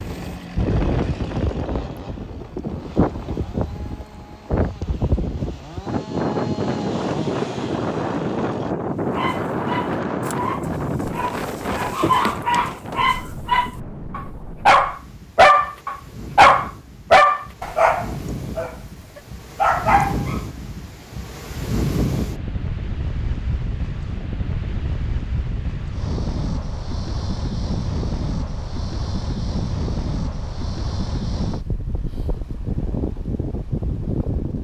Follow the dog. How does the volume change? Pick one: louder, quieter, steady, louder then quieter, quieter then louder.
louder then quieter.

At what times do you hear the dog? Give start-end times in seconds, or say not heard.
9.1-20.4.